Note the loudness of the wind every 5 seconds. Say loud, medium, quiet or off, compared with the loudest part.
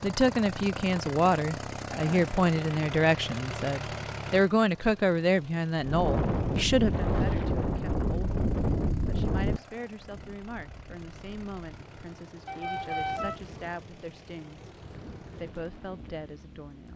off, loud, quiet, quiet.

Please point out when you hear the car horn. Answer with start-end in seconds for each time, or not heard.
12.4-13.8.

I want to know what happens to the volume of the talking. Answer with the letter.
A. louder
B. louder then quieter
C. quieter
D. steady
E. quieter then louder
C.